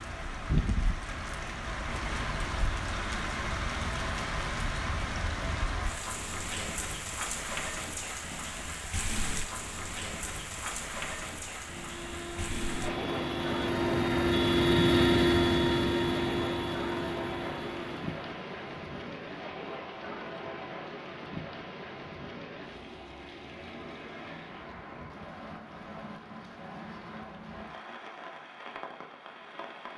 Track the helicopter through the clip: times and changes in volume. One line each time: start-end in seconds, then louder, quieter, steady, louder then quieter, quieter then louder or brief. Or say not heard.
11.6-18.2 louder then quieter.